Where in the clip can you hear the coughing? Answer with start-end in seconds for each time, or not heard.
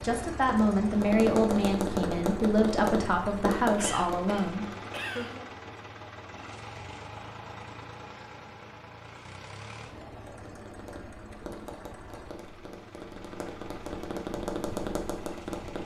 3.8-5.3.